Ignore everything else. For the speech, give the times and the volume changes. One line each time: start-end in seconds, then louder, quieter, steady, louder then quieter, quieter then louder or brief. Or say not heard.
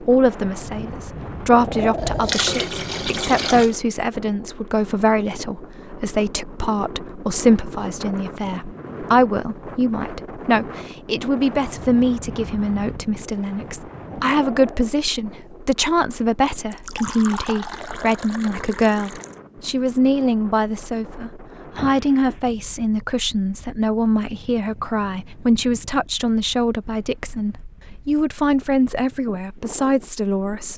0.0-30.7 steady.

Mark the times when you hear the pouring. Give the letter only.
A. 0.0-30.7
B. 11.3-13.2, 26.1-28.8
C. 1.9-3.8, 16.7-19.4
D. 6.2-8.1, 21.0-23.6
C.